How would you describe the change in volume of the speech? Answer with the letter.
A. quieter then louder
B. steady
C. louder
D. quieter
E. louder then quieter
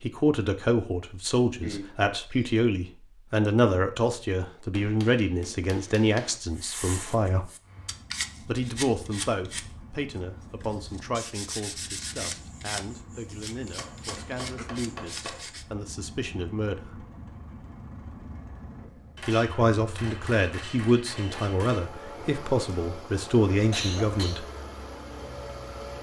A.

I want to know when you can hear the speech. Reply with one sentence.
The speech can be heard from 0.0 to 7.5 s, from 8.4 to 17.1 s and from 19.2 to 24.4 s.